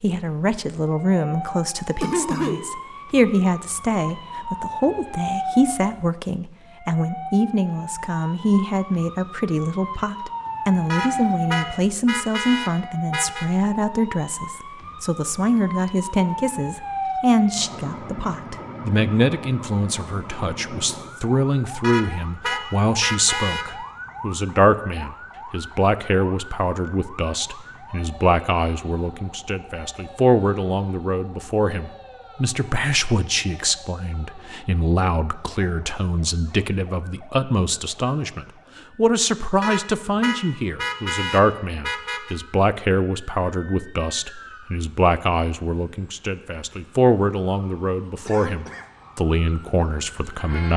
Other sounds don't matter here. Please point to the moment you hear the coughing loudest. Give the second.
2 s.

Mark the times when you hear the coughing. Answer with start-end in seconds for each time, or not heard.
2.0-2.6, 48.2-49.1.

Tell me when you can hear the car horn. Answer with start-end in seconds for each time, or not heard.
10.9-13.4, 21.8-23.6, 39.6-42.4.